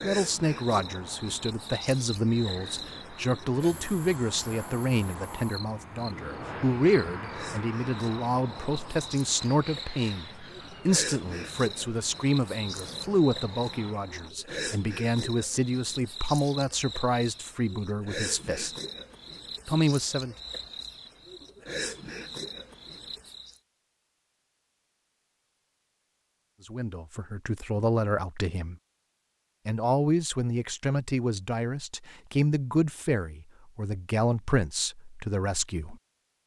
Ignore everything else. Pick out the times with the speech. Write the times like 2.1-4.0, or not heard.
0.0-18.8, 19.6-20.4, 26.6-28.8, 29.6-36.0.